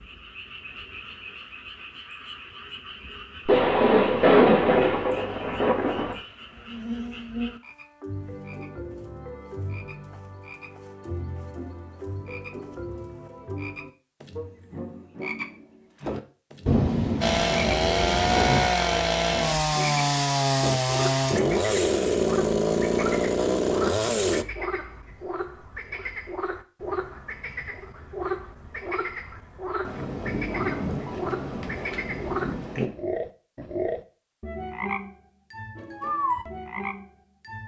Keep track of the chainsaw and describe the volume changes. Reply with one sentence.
The volume of the chainsaw stays about the same.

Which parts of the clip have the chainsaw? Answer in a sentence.
You can hear the chainsaw from 17.2 to 24.4 s.